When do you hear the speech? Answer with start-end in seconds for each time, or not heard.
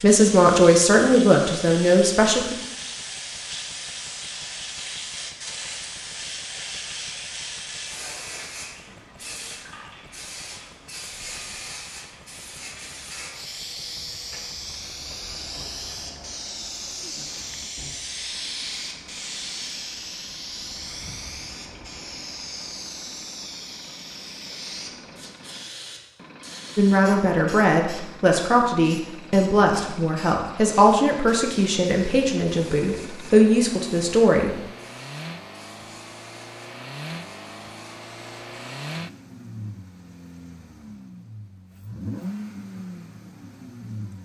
0.0-2.5, 26.8-34.5.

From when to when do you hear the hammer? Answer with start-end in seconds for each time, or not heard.
not heard.